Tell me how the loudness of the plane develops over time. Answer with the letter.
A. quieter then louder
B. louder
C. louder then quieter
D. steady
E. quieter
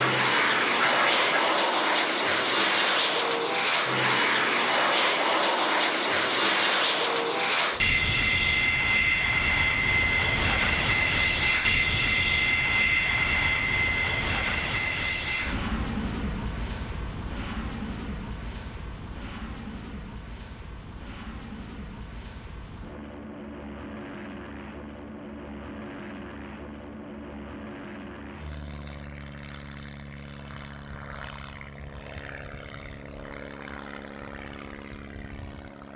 E.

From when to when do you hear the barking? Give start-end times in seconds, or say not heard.
not heard.